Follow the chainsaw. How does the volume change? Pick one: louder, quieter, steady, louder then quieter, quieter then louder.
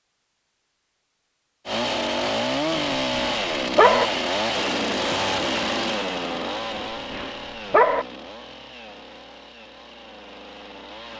quieter.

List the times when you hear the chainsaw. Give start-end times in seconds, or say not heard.
1.6-11.1.